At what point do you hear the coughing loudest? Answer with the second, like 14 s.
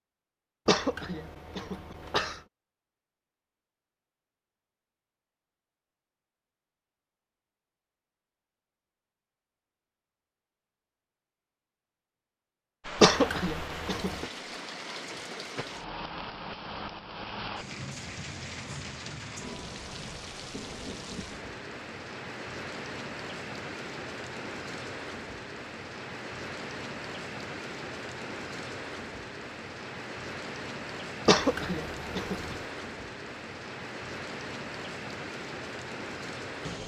13 s.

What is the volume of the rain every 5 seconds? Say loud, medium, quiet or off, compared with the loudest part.
off, off, loud, loud, loud, loud, loud, loud.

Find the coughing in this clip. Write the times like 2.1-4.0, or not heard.
0.7-2.4, 13.0-14.2, 31.2-32.6.